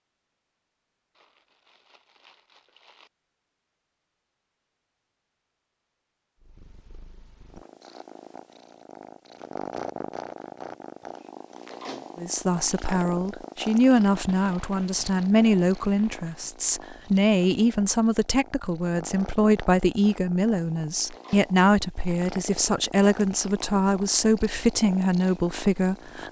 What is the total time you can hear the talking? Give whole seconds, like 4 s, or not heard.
14 s.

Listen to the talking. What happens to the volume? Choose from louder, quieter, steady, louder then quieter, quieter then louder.
steady.